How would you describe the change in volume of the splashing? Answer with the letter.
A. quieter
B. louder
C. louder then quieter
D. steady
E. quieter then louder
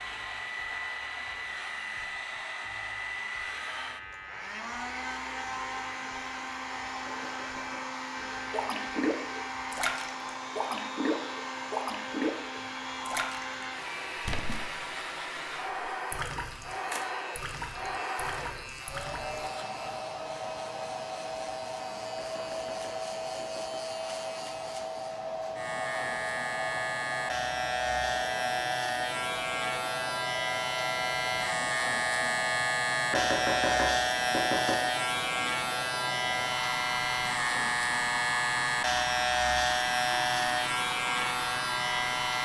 A.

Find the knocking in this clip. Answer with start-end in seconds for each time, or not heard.
7.0-8.0, 22.1-23.8, 33.1-34.8.